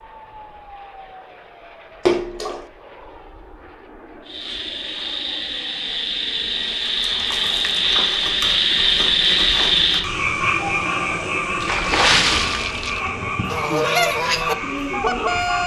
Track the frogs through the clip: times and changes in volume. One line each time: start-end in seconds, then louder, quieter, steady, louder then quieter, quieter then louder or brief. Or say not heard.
4.2-15.6 louder then quieter.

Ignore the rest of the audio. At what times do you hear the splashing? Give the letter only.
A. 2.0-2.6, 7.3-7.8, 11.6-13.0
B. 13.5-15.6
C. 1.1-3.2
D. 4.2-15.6
A.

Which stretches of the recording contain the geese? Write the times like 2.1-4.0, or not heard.
13.5-15.6.